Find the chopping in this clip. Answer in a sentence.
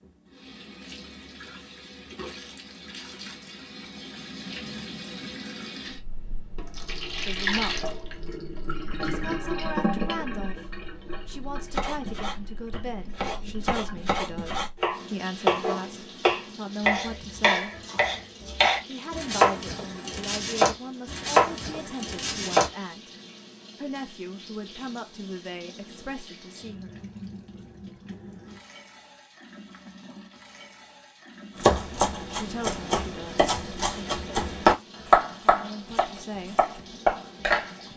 The chopping can be heard from 11.7 to 22.7 s and from 31.6 to 37.8 s.